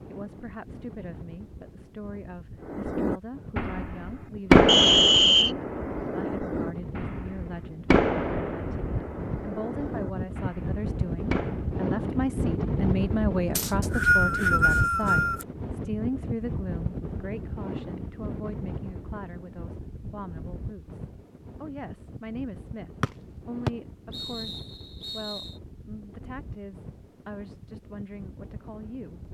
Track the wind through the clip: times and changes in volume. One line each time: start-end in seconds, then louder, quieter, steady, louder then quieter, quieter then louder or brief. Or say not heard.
0.0-29.3 louder then quieter.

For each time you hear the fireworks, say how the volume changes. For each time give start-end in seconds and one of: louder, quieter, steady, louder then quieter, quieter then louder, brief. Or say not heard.
2.7-11.7 quieter.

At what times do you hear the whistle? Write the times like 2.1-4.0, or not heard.
4.7-5.5, 13.6-15.4, 23.0-25.5.